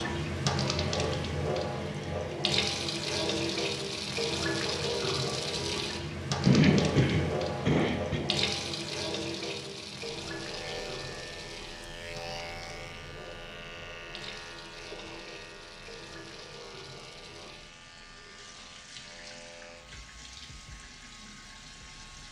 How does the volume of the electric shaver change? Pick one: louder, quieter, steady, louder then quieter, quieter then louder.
quieter.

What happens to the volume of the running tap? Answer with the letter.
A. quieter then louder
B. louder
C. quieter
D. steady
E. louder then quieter
C.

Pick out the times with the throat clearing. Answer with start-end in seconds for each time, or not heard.
6.5-8.2.